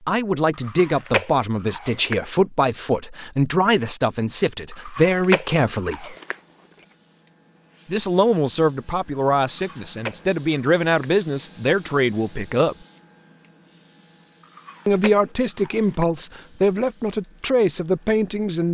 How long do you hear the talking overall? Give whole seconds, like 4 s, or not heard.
15 s.